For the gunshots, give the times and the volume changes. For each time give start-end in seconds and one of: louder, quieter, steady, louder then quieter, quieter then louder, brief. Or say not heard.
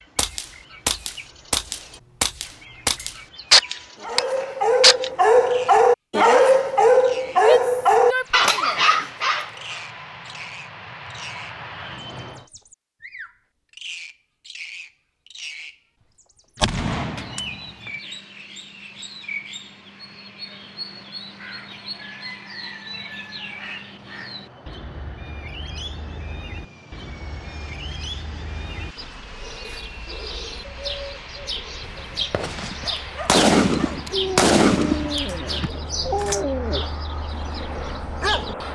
0.1-5.1 louder then quieter
16.6-17.9 brief
31.9-36.4 louder then quieter.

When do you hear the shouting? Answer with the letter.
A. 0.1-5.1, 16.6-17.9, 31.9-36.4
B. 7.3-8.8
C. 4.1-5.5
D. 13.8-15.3
B.